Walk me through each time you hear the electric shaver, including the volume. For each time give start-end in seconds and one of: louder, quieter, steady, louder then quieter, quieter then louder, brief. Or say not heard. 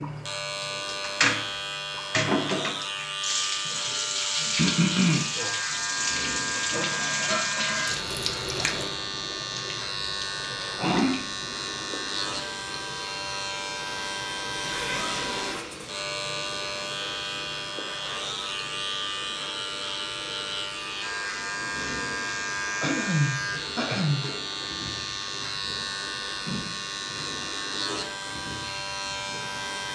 0.0-29.9 steady.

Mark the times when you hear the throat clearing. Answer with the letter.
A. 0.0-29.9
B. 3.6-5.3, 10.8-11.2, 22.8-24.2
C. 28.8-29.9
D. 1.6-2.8
B.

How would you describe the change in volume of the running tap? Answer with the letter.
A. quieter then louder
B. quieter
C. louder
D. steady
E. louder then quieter
B.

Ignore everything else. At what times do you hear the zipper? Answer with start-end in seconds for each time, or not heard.
14.5-15.7.